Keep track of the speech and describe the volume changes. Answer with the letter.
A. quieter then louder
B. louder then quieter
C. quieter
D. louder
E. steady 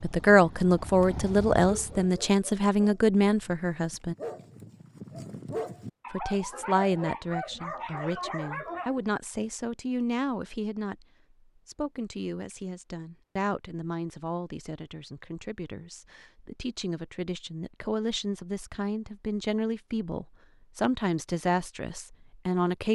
A.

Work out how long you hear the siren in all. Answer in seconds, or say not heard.
not heard.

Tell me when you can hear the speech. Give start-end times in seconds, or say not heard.
0.0-4.2, 6.1-11.1, 11.7-22.9.